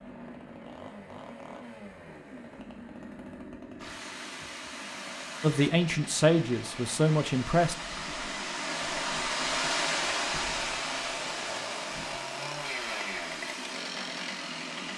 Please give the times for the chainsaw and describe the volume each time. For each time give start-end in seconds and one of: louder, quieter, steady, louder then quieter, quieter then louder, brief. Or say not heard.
0.0-14.9 louder.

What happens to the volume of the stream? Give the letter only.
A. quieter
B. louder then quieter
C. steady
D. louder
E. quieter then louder
B.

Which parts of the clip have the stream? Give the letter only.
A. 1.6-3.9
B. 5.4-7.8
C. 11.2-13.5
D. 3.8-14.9
D.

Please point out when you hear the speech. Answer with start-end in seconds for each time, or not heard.
5.4-7.8.